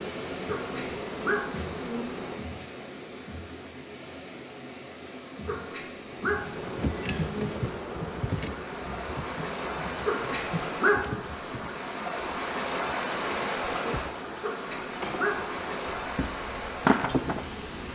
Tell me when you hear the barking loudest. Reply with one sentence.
The loudest moment of the barking is at 11 seconds.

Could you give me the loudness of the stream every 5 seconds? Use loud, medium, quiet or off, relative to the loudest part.
medium, medium, loud, loud.